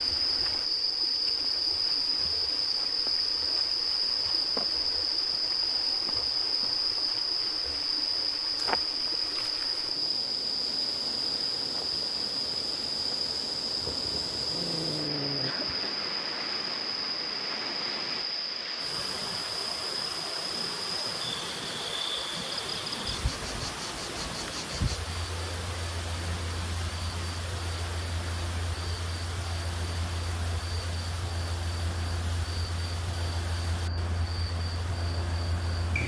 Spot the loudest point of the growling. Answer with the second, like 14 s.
15 s.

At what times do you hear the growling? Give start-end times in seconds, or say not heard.
13.8-15.6.